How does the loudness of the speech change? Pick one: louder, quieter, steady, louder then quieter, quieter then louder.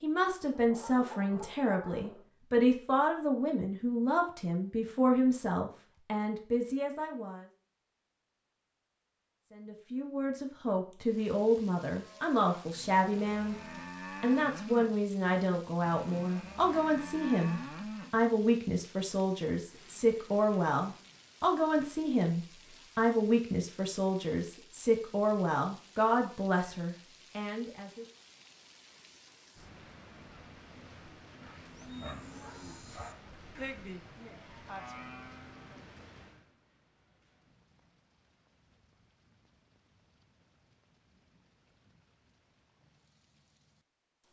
steady.